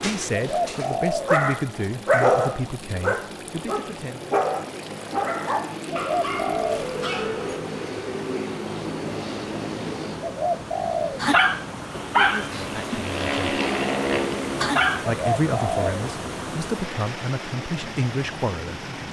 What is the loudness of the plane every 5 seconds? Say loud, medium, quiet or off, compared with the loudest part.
medium, loud, loud, medium.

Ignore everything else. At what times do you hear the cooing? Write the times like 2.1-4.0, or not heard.
0.3-1.4, 5.9-6.9, 10.2-11.2, 15.2-16.0.